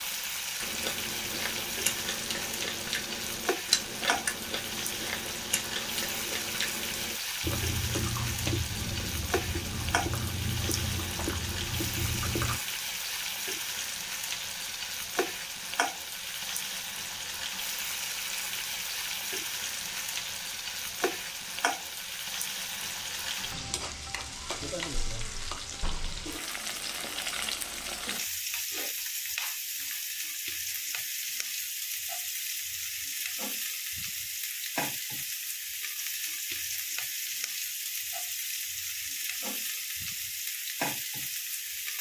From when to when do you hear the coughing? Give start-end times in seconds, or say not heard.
not heard.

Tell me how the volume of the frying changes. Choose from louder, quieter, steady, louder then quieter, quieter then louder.
steady.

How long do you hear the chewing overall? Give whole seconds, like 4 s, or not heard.
12 s.